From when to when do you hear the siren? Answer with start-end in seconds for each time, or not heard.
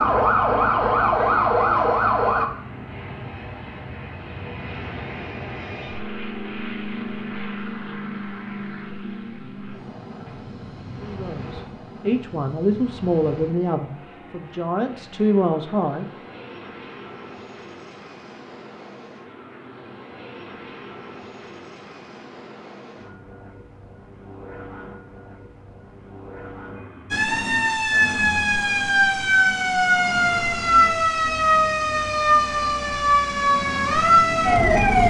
0.0-2.5, 27.1-35.0.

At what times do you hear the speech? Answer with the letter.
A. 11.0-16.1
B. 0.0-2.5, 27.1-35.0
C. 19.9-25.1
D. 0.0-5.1
A.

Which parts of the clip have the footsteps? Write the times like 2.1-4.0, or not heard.
not heard.